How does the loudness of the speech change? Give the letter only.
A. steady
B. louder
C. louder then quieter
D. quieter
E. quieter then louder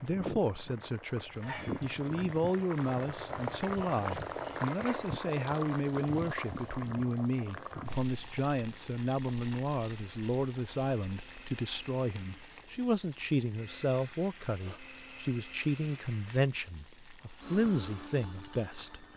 A.